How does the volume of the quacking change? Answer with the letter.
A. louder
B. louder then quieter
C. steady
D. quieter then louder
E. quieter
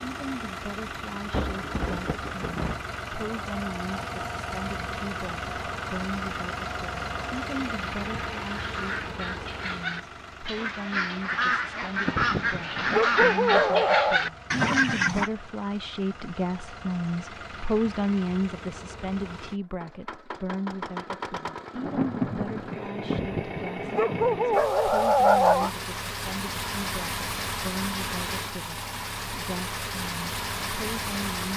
A.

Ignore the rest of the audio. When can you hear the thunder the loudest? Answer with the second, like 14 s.
22 s.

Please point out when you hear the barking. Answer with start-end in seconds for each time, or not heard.
12.1-14.2, 23.1-25.7.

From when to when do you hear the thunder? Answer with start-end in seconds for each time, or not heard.
1.3-2.8, 21.7-24.8.